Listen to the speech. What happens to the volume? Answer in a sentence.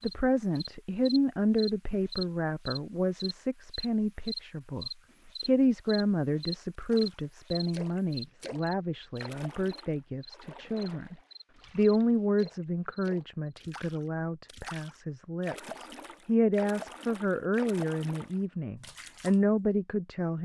The loudness of the speech stays about the same.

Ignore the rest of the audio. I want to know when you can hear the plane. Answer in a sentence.
You can't hear the plane here.